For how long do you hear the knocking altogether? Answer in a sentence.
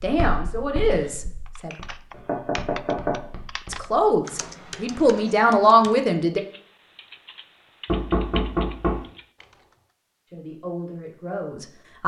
You can hear the knocking for 2 seconds altogether.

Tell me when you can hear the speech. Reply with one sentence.
The speech can be heard from 0.0 to 1.7 s, from 3.7 to 6.4 s and from 10.3 to 12.0 s.